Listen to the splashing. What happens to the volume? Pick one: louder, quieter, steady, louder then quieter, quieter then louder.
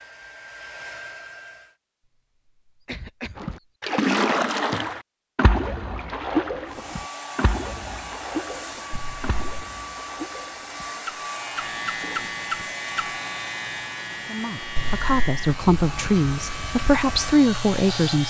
quieter then louder.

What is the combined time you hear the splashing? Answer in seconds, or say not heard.
10 s.